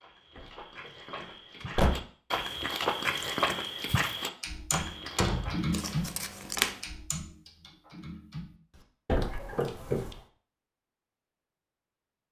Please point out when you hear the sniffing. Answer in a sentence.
You can't hear the sniffing here.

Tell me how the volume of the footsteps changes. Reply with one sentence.
The loudness of the footsteps goes up, then down.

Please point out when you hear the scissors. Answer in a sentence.
You can hear the scissors from 5.7 to 6.8 s.